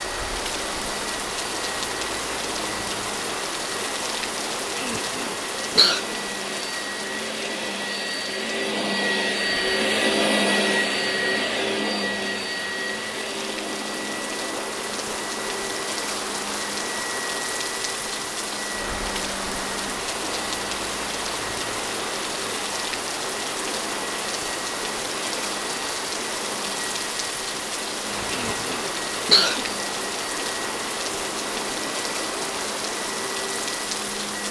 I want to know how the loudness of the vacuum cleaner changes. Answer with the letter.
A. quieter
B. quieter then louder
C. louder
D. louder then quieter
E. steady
D.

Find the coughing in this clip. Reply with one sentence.
You can hear the coughing from 4.8 to 6.0 s and from 28.3 to 29.8 s.